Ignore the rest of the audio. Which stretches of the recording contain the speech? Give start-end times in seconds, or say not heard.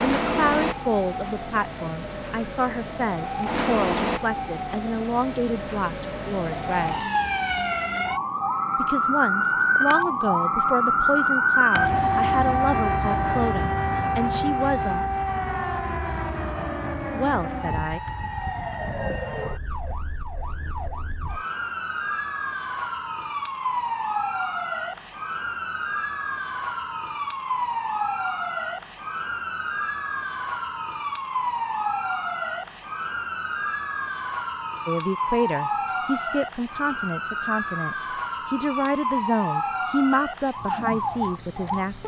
0.0-7.0, 8.8-15.1, 17.1-18.0, 34.9-42.0.